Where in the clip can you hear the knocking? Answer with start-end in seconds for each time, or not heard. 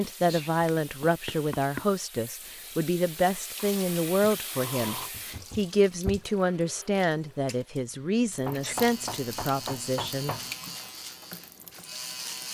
0.6-1.9, 5.1-6.2, 8.4-10.6.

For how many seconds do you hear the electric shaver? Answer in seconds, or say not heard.
4 s.